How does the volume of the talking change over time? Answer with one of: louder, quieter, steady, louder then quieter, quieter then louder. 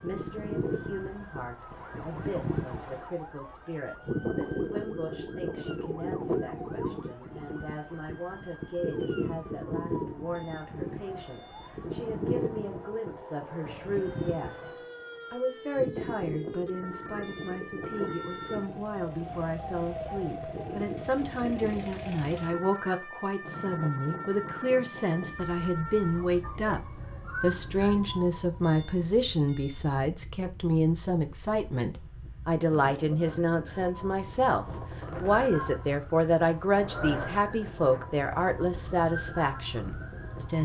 louder.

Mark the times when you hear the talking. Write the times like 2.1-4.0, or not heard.
0.0-40.6.